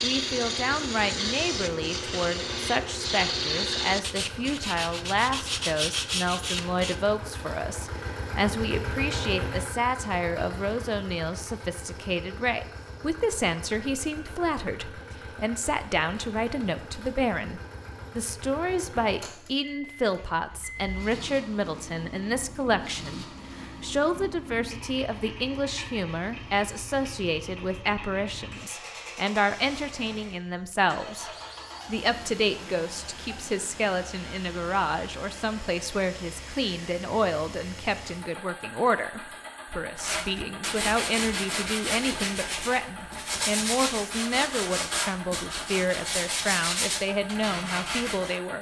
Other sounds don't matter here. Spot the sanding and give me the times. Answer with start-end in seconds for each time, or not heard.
0.0-7.0, 40.0-48.4.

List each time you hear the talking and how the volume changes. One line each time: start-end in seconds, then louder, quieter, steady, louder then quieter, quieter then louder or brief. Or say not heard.
0.0-48.5 steady.